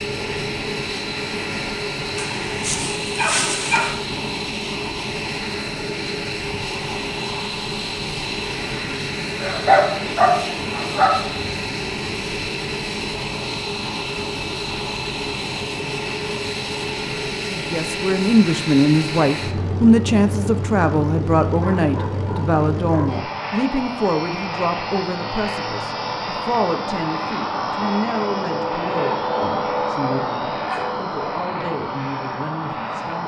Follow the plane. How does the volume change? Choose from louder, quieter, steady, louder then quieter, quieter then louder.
steady.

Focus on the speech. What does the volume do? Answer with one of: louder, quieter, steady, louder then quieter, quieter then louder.
quieter.